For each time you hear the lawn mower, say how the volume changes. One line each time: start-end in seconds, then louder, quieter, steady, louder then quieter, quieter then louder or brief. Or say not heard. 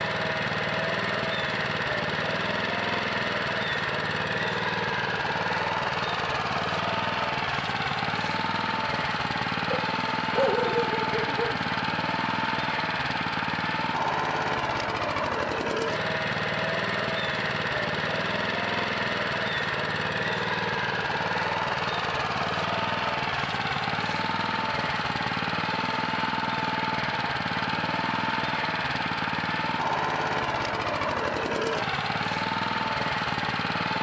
0.0-33.9 steady.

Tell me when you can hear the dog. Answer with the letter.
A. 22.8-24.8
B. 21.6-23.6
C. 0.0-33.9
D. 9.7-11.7
D.